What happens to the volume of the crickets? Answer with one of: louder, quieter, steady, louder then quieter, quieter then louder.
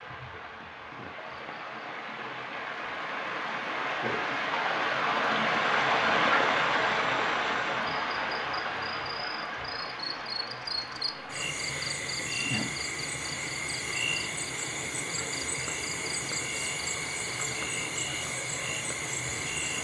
louder.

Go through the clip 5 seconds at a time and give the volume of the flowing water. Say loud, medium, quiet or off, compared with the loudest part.
medium, loud, quiet, quiet.